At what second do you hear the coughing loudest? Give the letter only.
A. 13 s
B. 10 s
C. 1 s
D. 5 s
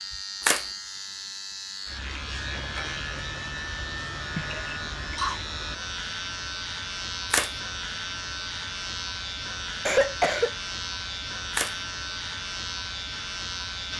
B.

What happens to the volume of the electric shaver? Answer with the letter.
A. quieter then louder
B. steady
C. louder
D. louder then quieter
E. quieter
B.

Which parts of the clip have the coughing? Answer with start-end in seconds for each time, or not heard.
4.3-5.4, 9.8-10.5.